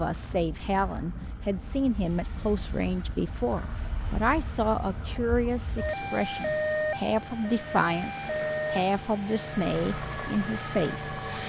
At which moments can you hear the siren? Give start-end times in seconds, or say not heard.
0.0-11.4.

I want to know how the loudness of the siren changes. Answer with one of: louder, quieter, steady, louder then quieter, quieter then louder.
louder then quieter.